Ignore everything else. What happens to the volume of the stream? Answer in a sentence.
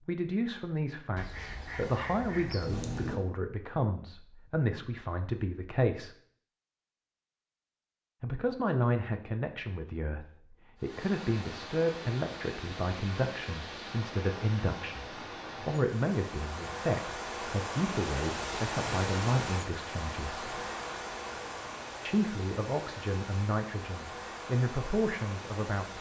The volume of the stream goes up, then down.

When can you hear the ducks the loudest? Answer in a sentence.
The volume of the ducks peaks at 3 seconds.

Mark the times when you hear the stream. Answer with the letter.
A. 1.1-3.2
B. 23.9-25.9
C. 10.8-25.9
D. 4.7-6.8
C.